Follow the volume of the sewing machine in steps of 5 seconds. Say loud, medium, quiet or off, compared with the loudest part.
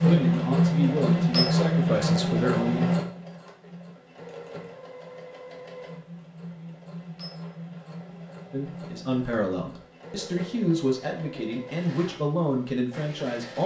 loud, quiet, quiet.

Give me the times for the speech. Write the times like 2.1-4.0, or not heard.
0.0-2.9, 8.5-13.6.